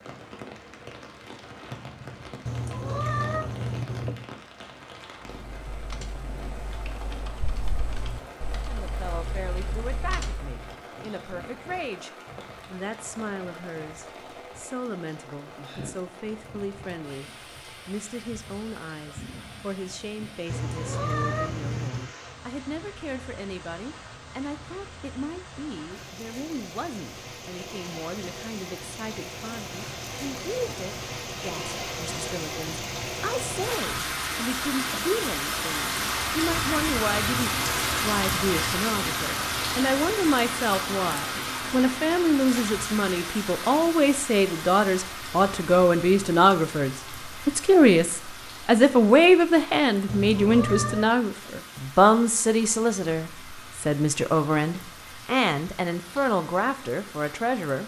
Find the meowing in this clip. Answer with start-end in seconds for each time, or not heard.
2.5-4.3, 20.4-22.1, 50.0-51.1.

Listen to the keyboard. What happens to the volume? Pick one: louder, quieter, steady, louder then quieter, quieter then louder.
louder.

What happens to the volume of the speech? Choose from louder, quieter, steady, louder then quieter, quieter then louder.
louder.